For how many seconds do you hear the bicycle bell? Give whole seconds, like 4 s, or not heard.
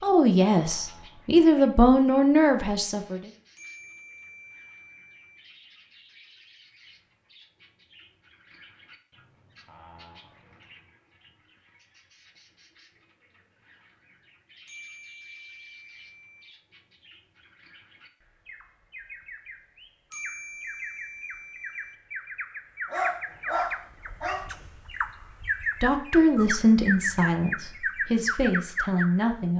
5 s.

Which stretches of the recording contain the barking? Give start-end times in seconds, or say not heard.
22.9-24.5.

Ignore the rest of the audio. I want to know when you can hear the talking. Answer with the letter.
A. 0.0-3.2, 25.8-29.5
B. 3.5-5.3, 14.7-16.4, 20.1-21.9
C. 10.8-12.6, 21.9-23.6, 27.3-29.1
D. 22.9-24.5
A.